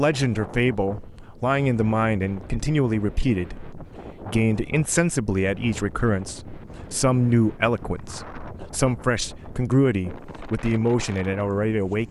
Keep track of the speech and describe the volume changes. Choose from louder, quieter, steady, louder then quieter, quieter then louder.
steady.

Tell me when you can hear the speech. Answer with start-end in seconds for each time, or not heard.
0.0-12.0.